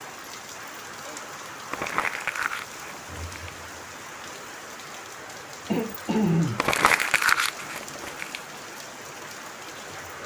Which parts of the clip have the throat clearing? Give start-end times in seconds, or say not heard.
0.9-1.4, 5.7-6.7.